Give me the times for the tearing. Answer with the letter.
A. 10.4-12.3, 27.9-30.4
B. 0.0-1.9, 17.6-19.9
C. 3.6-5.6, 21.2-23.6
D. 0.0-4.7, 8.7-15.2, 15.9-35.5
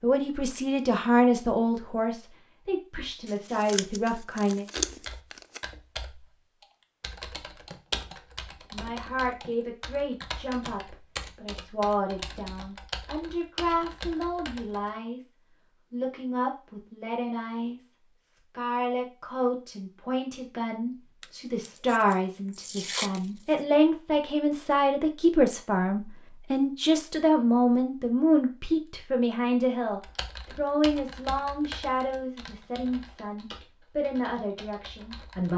C.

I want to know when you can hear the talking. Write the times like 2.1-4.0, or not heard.
0.0-4.7, 8.7-15.2, 15.9-35.5.